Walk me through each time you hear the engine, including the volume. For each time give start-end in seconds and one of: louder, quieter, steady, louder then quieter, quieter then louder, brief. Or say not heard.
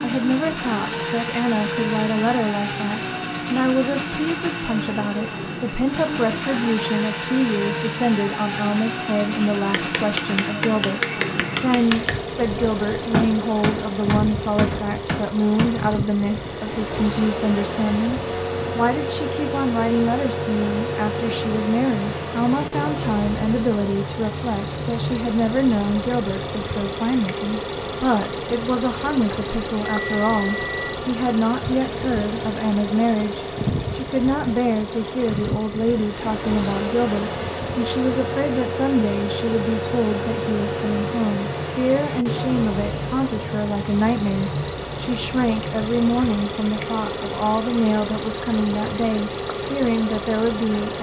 0.0-50.9 steady.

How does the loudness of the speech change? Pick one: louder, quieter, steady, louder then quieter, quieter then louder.
steady.